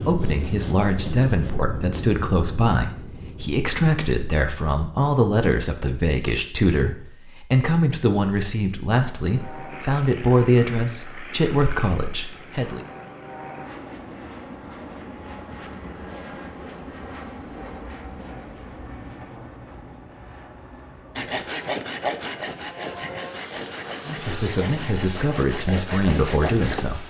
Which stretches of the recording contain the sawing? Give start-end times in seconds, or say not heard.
0.0-1.6, 21.1-26.9.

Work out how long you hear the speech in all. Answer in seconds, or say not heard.
16 s.